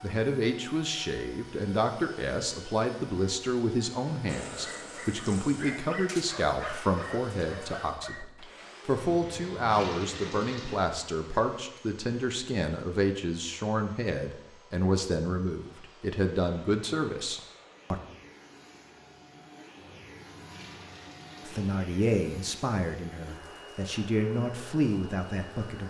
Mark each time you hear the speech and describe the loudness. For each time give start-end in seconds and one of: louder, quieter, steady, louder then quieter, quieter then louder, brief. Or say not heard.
0.0-18.0 steady
21.4-25.8 quieter then louder.